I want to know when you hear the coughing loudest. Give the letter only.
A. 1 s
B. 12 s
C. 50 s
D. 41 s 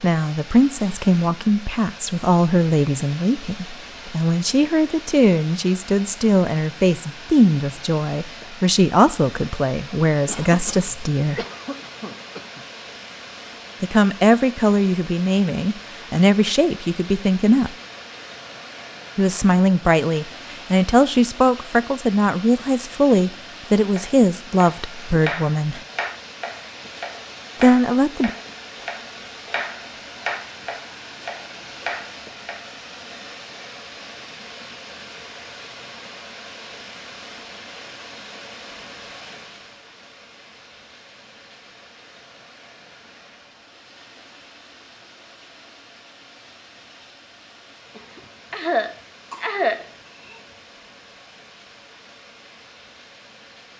C.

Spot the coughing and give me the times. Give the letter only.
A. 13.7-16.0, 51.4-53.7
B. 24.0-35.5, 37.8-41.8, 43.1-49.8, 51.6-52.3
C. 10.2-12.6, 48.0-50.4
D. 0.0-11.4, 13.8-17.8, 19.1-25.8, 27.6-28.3
C.